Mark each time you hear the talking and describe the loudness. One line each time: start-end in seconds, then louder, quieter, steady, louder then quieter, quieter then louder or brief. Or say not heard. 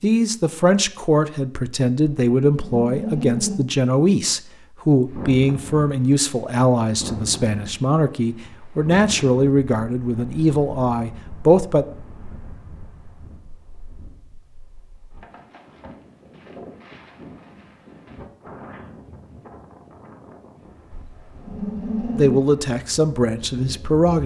0.0-11.8 steady
22.1-24.2 brief.